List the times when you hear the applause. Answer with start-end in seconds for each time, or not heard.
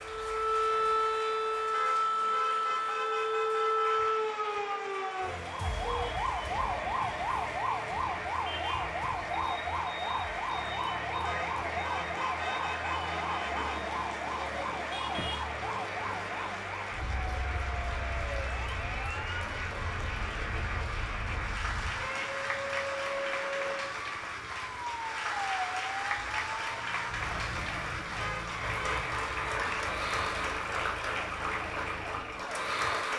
0.0-33.1.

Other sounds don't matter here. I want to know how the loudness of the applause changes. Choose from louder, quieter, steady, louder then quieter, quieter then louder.
louder.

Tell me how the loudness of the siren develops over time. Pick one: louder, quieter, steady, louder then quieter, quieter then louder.
quieter.